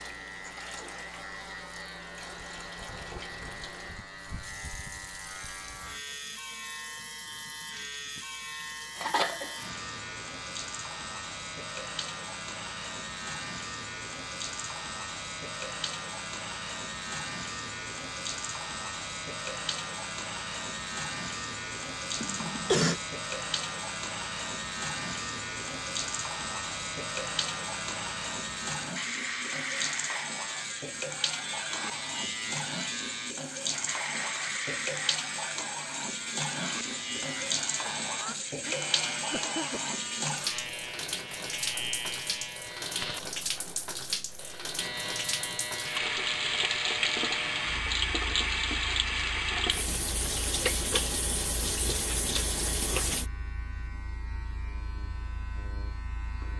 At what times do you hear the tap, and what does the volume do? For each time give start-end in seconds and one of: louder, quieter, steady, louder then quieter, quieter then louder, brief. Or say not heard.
0.0-53.2 louder.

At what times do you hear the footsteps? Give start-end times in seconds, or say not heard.
not heard.